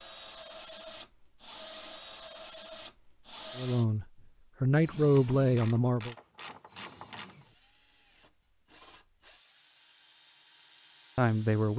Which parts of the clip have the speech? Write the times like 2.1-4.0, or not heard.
3.5-6.2, 11.2-11.7.